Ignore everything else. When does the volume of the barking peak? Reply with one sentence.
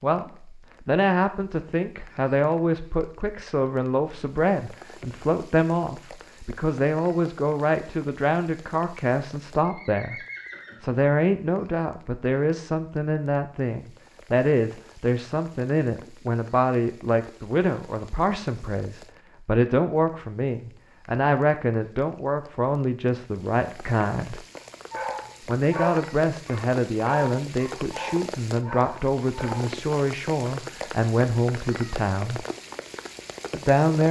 The volume of the barking peaks at 26 seconds.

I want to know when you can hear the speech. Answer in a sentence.
You can hear the speech from 0.0 to 10.2 s, from 10.8 to 24.4 s, from 25.4 to 32.5 s and from 33.5 to 34.0 s.